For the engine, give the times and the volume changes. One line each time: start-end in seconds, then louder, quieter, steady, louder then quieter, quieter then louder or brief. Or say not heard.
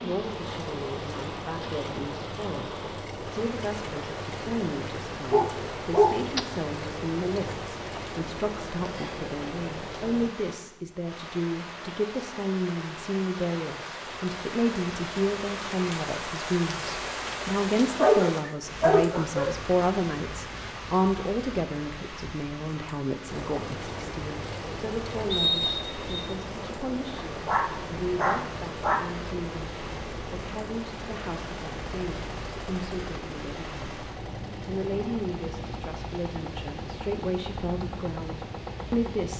0.1-10.3 steady
23.2-39.3 steady.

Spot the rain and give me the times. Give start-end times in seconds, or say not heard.
0.0-39.3.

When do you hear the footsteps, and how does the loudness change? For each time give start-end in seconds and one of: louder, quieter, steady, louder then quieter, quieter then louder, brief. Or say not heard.
not heard.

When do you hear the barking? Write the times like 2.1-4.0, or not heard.
5.3-6.5, 17.9-19.6, 27.1-29.1.